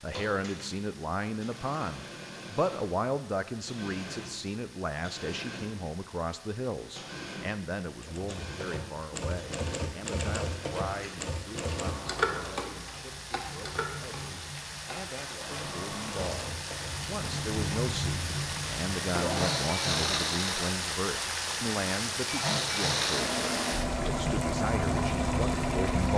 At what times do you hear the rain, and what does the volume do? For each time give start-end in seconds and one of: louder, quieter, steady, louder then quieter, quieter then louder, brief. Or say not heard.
0.0-26.1 louder.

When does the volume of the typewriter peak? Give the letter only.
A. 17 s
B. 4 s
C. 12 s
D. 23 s
C.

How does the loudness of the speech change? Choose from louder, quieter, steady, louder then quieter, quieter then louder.
quieter then louder.